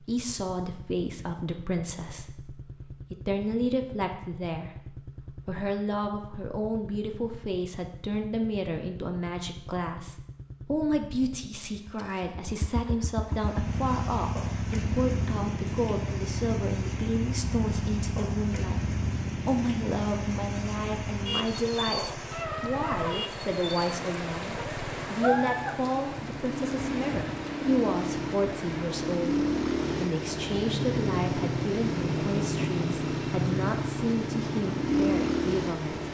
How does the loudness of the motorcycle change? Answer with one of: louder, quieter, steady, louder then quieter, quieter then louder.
louder.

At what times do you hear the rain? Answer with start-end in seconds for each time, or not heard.
13.2-36.0.